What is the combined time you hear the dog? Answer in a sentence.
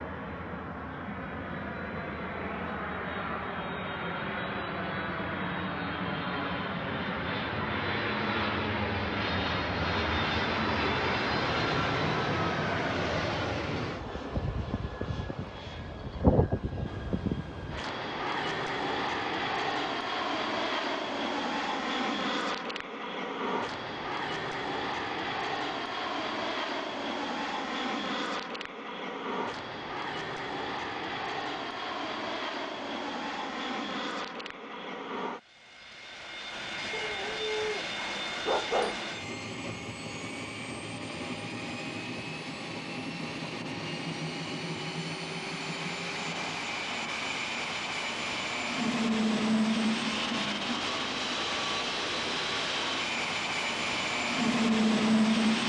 You can hear the dog for 2 seconds altogether.